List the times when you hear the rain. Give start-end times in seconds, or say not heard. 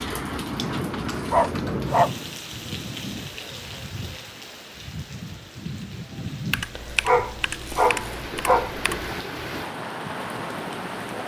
0.0-11.2.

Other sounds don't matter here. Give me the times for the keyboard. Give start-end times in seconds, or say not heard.
0.6-2.5, 6.5-9.2.